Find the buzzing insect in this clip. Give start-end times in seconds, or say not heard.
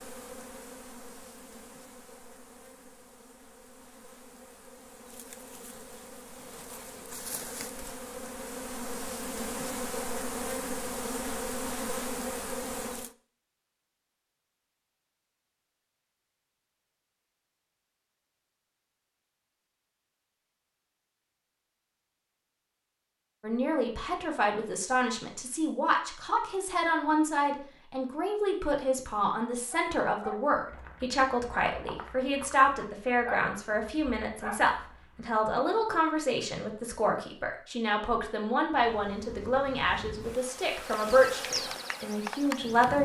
0.0-13.2, 38.6-42.9.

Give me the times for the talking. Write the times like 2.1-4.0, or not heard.
23.4-42.9.